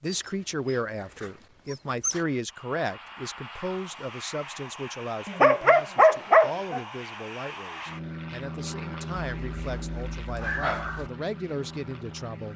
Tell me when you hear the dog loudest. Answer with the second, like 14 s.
6 s.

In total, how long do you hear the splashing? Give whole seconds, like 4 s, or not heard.
not heard.